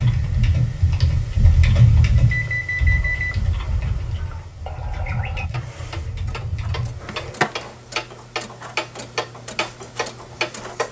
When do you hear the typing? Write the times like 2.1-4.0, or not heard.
0.0-7.3.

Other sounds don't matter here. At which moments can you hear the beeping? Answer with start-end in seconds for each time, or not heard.
2.1-3.4.